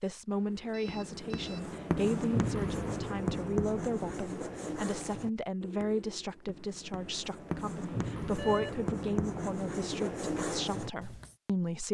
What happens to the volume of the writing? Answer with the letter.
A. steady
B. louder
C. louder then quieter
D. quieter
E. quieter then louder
E.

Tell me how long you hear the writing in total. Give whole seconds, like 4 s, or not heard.
11 s.